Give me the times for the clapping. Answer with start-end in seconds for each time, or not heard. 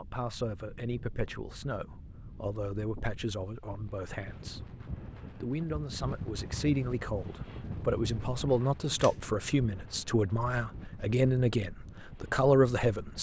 not heard.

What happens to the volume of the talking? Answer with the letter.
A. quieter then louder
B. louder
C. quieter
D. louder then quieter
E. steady
B.